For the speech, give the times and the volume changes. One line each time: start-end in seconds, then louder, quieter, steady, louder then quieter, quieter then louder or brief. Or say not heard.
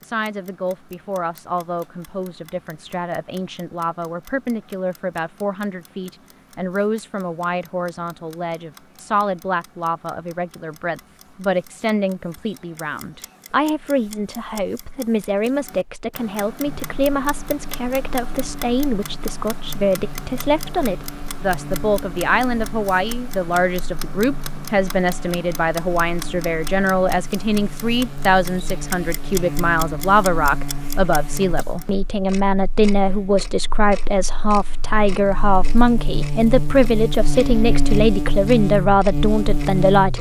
0.0-40.1 louder.